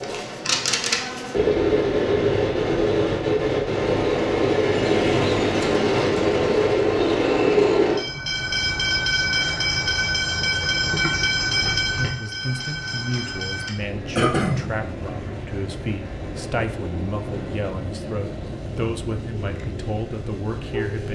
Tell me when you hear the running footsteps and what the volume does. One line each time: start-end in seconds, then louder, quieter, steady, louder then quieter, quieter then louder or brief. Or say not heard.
not heard.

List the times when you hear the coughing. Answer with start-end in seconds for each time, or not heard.
14.2-14.6.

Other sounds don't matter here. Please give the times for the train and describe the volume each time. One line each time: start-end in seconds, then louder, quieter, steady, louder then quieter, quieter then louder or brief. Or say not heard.
0.0-21.1 quieter.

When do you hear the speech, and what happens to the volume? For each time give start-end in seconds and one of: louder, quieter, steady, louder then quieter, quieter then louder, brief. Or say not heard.
11.9-21.1 steady.